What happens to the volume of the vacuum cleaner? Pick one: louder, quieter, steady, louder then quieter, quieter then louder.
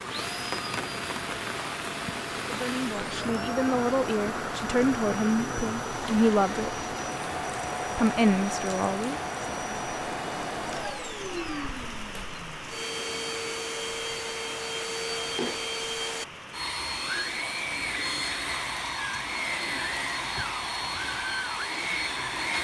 louder.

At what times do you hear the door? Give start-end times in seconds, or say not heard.
not heard.